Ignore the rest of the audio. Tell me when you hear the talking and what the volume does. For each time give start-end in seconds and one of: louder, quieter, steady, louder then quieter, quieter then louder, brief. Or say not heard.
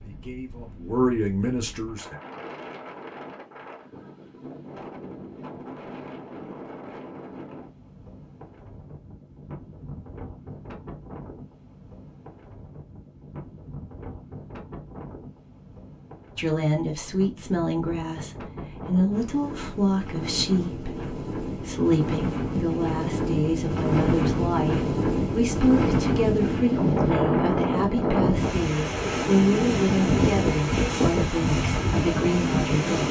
0.0-2.1 brief
16.4-33.0 steady.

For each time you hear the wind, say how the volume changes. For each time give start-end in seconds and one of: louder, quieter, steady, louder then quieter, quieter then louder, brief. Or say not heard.
0.0-33.0 louder.